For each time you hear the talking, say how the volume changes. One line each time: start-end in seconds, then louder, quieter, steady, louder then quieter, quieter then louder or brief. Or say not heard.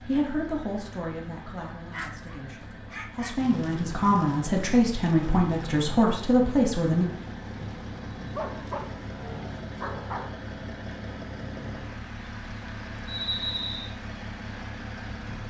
0.1-7.0 quieter then louder.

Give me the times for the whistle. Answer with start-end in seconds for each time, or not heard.
13.1-13.9.